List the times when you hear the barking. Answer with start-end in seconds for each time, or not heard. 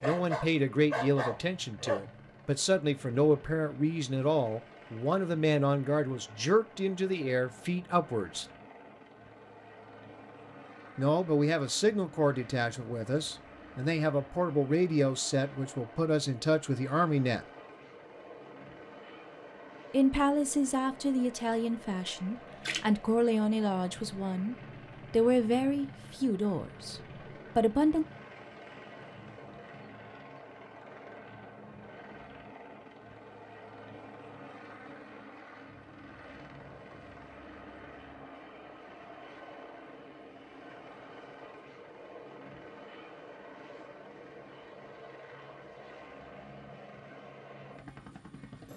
0.0-2.0.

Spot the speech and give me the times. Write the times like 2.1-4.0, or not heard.
0.0-8.4, 10.9-17.4, 19.9-28.1.